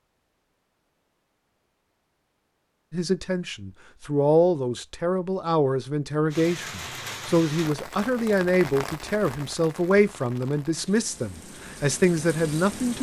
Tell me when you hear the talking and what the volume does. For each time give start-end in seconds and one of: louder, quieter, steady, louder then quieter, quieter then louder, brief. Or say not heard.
2.9-12.9 steady.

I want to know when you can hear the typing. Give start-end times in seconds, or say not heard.
not heard.